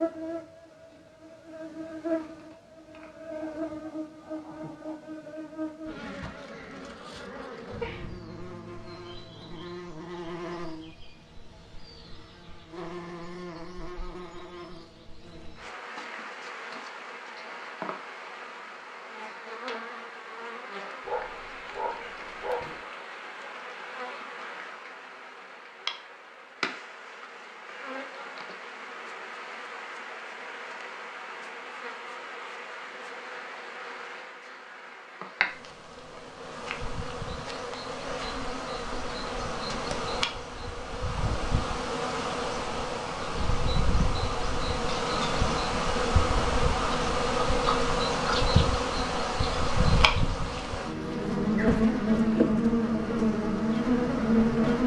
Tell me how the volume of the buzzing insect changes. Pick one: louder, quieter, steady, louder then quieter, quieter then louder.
louder.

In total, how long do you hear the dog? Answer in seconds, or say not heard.
2 s.